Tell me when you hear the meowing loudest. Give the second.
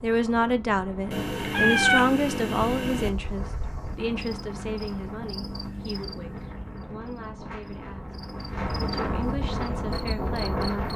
2 s.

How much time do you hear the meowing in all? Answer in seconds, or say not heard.
2 s.